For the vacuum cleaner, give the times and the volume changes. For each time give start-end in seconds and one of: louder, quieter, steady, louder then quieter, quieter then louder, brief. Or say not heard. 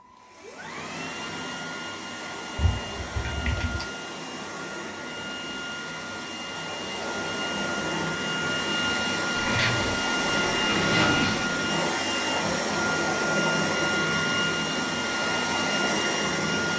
0.0-16.7 louder.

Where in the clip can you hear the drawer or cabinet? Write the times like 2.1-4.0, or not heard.
2.5-3.9, 9.3-11.6.